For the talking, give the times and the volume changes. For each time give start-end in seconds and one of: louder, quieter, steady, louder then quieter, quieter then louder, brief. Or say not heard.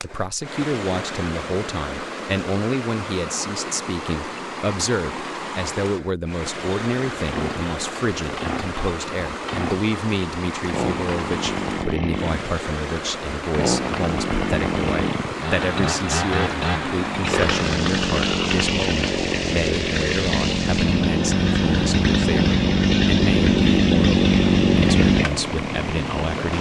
0.0-26.5 steady.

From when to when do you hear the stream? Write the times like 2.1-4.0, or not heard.
0.0-26.5.